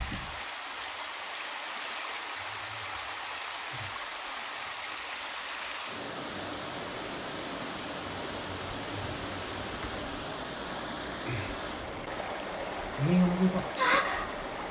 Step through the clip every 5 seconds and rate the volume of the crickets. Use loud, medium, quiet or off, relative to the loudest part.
quiet, quiet, loud.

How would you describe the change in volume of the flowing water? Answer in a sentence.
The loudness of the flowing water stays about the same.